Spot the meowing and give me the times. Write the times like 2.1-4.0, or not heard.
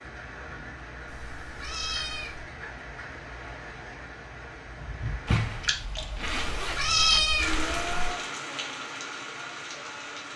1.1-2.5, 6.3-8.2.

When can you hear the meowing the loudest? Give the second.
7 s.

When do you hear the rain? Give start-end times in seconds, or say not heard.
0.0-10.3.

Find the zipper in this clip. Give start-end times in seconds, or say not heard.
5.2-7.2.